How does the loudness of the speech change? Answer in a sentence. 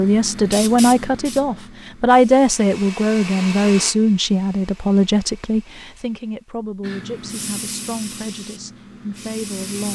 The volume of the speech goes down.